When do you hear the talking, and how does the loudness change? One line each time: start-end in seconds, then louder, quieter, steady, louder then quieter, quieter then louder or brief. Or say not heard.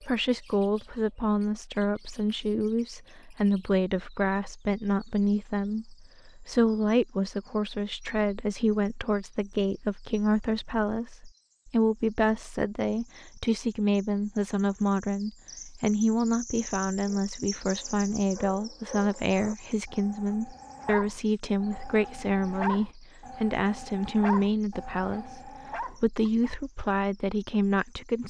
0.0-28.2 steady.